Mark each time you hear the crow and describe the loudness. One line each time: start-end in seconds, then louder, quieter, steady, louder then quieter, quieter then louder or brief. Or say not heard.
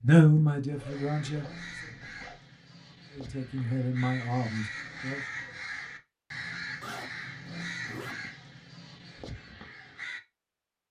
0.8-10.2 louder then quieter.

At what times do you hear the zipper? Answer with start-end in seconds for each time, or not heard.
0.7-2.4, 6.8-8.2.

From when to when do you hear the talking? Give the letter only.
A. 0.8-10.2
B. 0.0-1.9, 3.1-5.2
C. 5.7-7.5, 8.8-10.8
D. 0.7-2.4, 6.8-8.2
B.